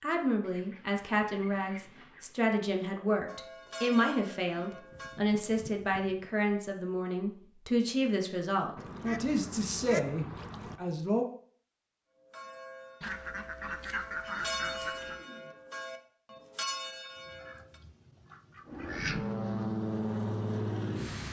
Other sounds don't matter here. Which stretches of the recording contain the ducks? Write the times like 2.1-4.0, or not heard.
0.4-2.5, 4.9-6.3, 8.8-10.8, 13.0-15.2, 17.1-19.3.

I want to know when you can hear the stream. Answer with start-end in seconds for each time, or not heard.
not heard.